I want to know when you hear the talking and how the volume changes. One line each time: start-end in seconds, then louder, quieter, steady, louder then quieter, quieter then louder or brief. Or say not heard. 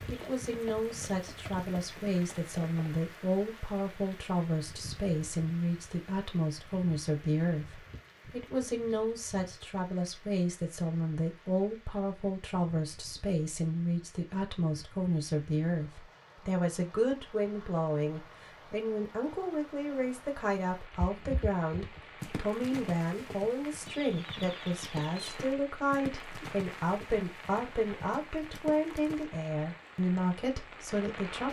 0.1-31.4 steady.